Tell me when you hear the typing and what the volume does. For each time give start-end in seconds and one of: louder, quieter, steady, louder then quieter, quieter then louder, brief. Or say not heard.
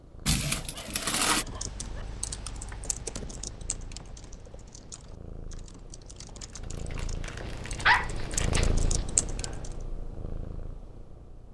1.2-9.8 quieter then louder.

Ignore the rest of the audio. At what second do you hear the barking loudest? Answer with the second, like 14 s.
8 s.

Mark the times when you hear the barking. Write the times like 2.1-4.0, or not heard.
0.2-2.0, 7.4-9.0.